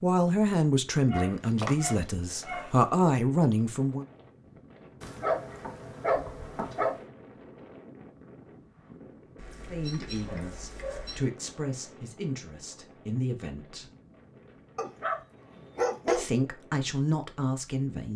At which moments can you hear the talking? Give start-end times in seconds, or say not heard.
0.0-4.0, 9.7-13.9, 16.1-18.1.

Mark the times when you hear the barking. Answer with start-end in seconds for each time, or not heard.
1.1-2.7, 5.0-7.0, 9.3-11.2, 14.8-16.2.